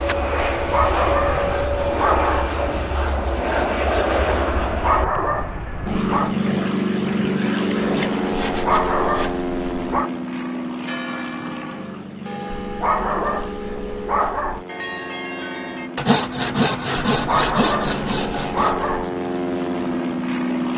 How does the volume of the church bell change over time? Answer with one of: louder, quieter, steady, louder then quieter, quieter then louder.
louder.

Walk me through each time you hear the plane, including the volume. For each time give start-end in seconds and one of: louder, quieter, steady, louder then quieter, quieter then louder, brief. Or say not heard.
0.0-20.7 quieter then louder.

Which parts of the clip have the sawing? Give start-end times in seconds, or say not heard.
1.5-4.4, 7.7-9.4, 15.9-18.8.